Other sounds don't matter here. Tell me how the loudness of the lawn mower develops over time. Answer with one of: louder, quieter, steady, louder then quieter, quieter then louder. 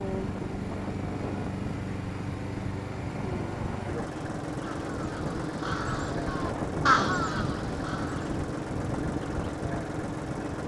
steady.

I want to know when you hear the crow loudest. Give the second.
7 s.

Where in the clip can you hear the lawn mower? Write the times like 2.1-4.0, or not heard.
0.0-10.6.